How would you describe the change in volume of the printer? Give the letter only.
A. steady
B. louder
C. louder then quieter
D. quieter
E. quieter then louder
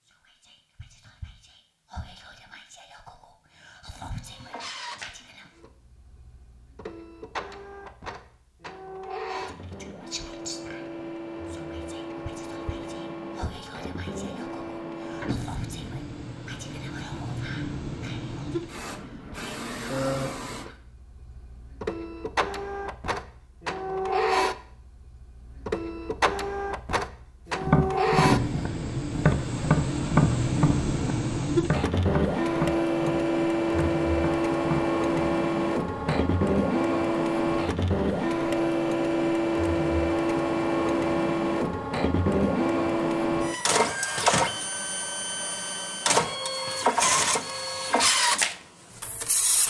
B.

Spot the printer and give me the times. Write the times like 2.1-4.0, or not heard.
4.2-49.6.